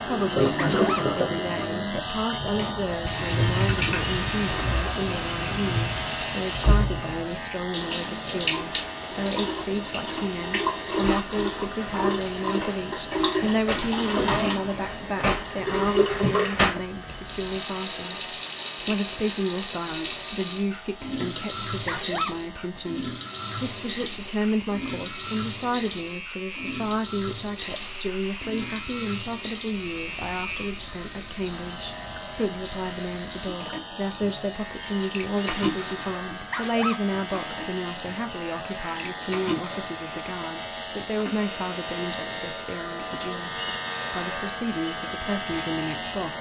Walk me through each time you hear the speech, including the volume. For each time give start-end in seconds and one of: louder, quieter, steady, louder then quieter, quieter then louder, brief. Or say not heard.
0.1-46.3 steady.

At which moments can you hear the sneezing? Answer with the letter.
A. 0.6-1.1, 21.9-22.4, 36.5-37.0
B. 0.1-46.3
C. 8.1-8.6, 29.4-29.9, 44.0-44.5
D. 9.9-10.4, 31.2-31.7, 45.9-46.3
A.